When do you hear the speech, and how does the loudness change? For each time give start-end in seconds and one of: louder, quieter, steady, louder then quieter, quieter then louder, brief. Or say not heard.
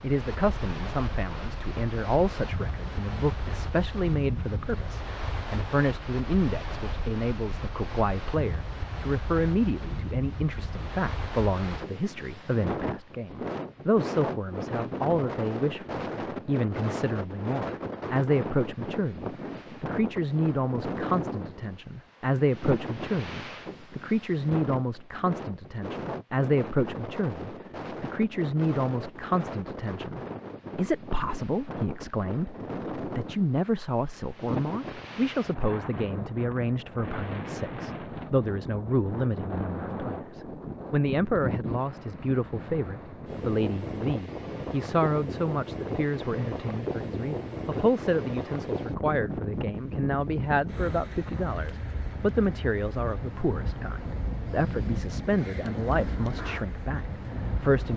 0.0-57.9 steady.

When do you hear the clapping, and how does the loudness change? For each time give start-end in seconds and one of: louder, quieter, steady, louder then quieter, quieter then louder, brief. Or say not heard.
not heard.